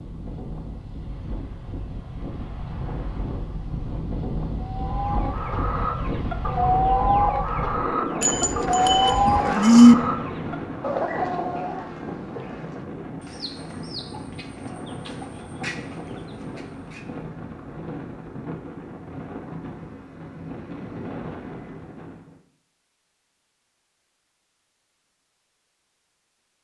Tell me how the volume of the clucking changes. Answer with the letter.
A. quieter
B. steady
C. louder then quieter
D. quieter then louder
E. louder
A.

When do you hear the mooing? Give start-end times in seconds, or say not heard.
8.2-9.9.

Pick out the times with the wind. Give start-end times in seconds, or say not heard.
0.0-22.4.